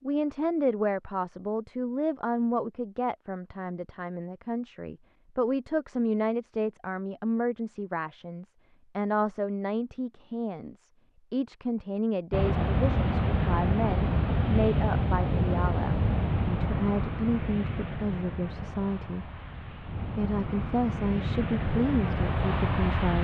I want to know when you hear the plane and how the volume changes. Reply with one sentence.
You can hear the plane from 12.3 to 23.1 s, getting quieter then louder.